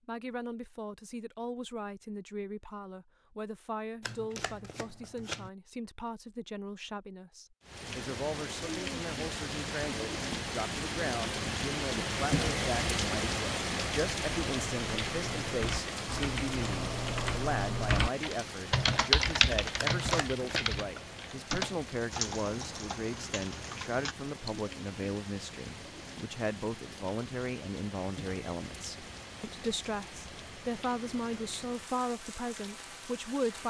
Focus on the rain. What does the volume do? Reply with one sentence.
The loudness of the rain goes down.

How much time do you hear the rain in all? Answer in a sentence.
You can hear the rain for 26 seconds altogether.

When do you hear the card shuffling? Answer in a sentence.
The card shuffling can be heard from 4.0 to 5.5 s and from 19.8 to 20.8 s.